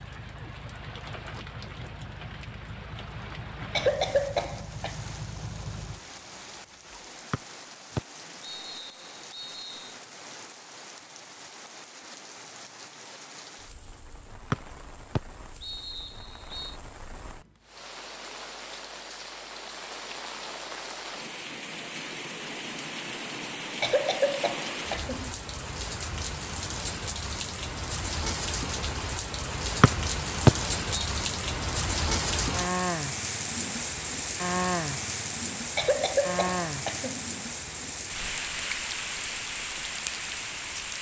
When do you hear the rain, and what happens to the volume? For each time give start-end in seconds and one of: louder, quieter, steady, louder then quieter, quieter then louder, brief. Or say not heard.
0.0-40.9 louder.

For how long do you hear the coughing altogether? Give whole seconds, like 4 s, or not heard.
4 s.